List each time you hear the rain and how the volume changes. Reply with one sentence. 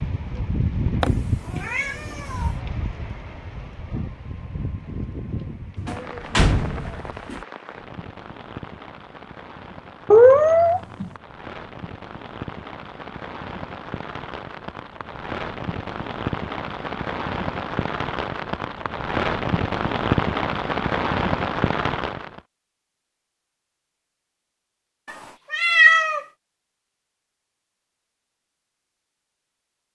The rain can be heard from 0.0 to 22.4 s, getting quieter then louder.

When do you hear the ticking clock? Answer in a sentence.
You can't hear the ticking clock here.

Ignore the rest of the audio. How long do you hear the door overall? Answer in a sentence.
The door can be heard for 2 seconds in total.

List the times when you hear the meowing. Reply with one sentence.
You can hear the meowing from 1.0 to 2.5 s, from 10.1 to 11.1 s and from 25.5 to 26.2 s.